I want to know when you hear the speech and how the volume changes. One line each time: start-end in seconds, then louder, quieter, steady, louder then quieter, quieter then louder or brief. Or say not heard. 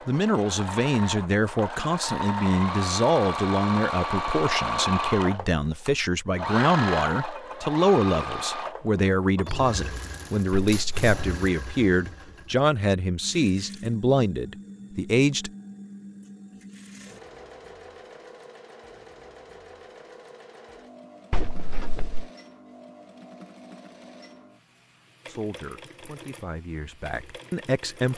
0.1-15.5 steady
25.2-28.1 brief.